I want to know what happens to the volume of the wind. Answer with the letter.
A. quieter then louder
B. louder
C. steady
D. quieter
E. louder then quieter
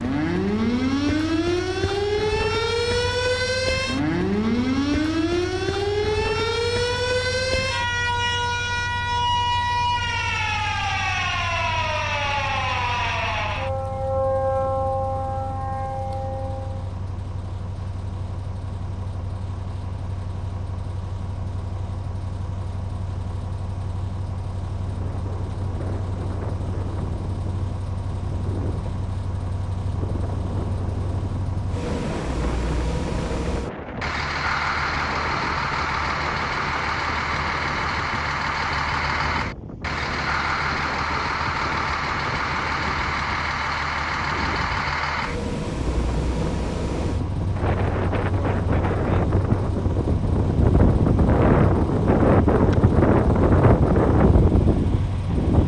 B.